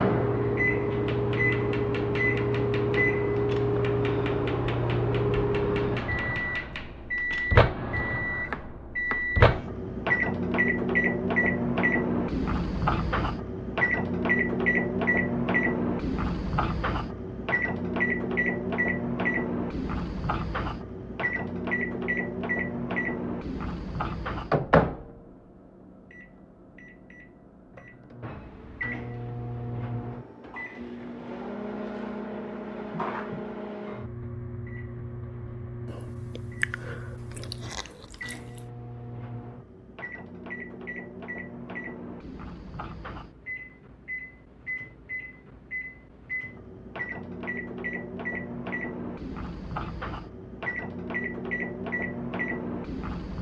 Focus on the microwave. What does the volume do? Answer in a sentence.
The loudness of the microwave goes down.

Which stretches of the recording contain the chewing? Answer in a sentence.
The chewing can be heard from 35.9 to 38.7 s.